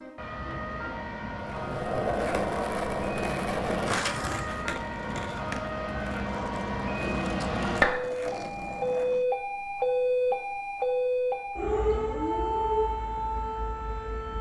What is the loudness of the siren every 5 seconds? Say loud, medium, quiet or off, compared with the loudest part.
medium, loud, loud.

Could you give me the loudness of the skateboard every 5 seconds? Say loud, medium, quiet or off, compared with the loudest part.
loud, medium, off.